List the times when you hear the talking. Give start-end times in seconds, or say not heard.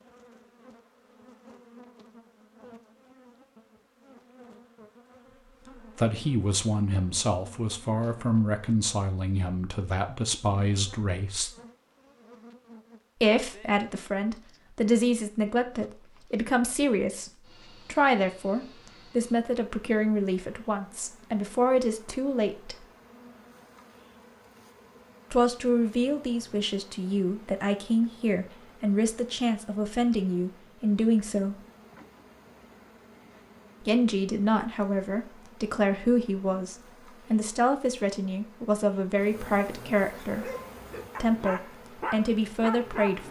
6.0-11.5, 13.2-22.9, 25.3-31.6, 33.8-40.5, 41.2-43.2.